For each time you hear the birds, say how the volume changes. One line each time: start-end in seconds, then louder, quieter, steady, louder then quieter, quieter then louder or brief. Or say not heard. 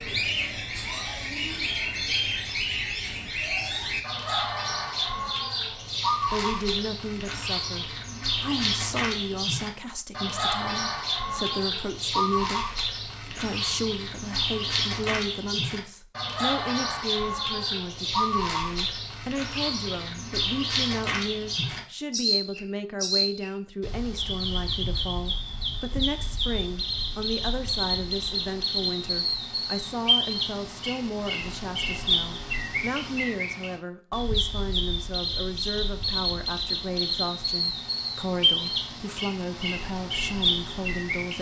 0.0-41.3 steady.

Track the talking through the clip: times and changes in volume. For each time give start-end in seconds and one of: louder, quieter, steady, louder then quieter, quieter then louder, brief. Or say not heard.
6.2-41.3 steady.